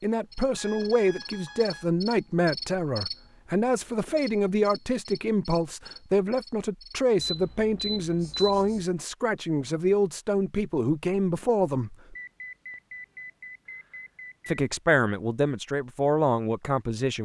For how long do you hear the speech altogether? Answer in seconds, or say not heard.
15 s.